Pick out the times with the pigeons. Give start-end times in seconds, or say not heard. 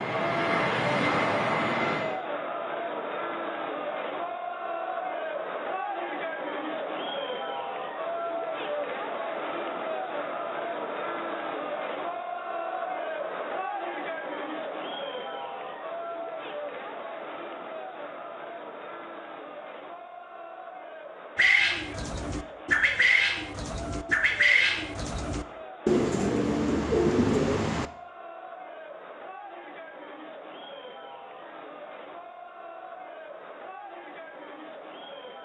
21.4-27.9.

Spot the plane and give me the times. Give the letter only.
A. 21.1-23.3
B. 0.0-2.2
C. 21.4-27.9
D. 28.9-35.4
B.